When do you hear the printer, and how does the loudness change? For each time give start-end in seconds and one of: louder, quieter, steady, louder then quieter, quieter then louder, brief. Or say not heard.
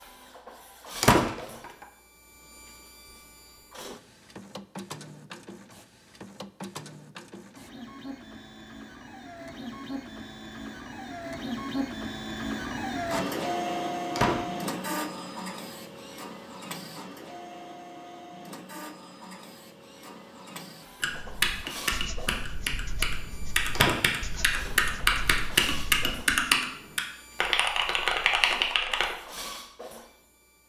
0.0-30.6 louder then quieter.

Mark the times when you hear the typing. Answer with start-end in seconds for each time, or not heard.
21.0-29.1.